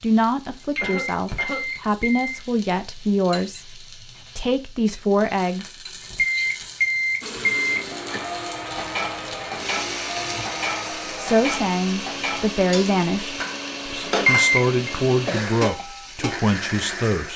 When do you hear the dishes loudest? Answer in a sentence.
The volume of the dishes peaks at 14 seconds.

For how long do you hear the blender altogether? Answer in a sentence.
The blender can be heard for 10 seconds in total.